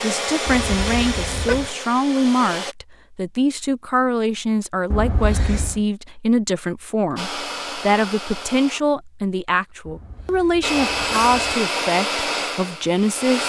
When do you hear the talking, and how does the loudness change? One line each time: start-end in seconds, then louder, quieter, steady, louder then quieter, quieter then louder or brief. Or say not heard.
0.0-13.4 steady.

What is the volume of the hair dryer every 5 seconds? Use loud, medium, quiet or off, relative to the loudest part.
loud, medium, loud.